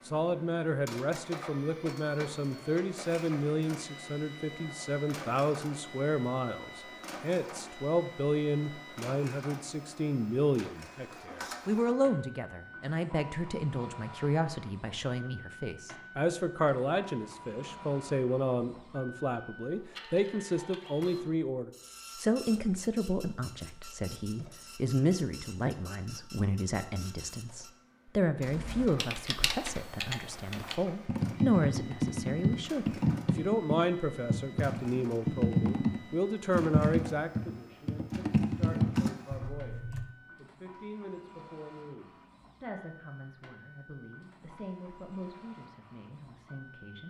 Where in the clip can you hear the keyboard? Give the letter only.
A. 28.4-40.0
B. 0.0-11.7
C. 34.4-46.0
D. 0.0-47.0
A.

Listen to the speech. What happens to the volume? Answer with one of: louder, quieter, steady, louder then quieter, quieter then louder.
quieter.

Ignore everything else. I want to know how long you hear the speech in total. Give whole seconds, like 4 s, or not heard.
47 s.